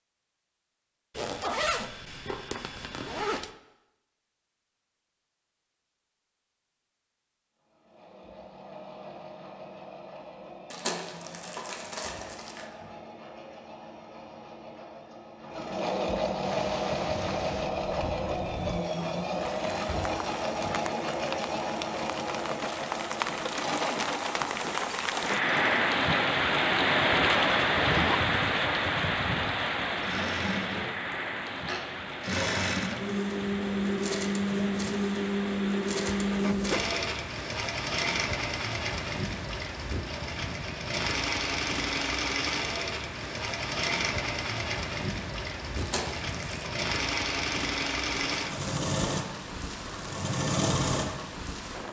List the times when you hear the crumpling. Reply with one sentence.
The crumpling can be heard from 10.7 to 12.7 s and from 45.8 to 46.8 s.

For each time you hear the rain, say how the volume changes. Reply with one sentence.
You can hear the rain from 16.4 to 51.8 s, getting louder then quieter.